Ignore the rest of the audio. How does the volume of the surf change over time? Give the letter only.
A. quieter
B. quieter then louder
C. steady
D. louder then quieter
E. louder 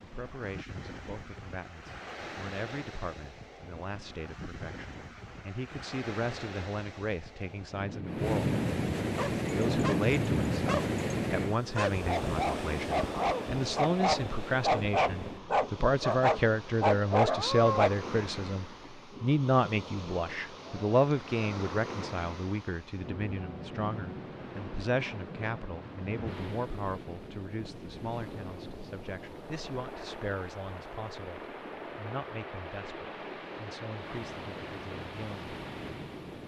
D.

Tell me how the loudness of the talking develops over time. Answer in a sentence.
The loudness of the talking goes up, then down.